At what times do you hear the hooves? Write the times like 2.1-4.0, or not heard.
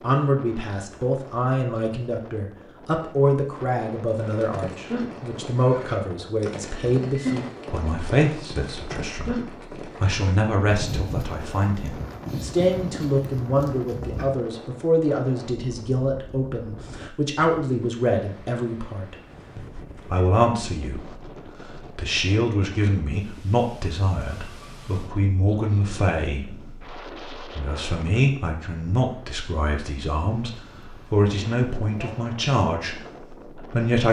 4.1-14.5.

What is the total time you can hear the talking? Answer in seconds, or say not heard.
33 s.